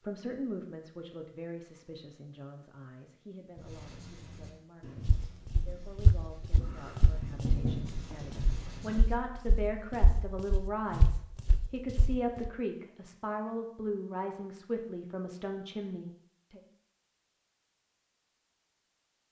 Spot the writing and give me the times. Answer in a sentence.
You can hear the writing from 3.5 to 9.1 s.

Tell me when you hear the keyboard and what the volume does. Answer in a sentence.
The keyboard can't be heard in this clip.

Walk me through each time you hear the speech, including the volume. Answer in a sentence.
You can hear the speech from 0.0 to 16.6 s, getting quieter then louder.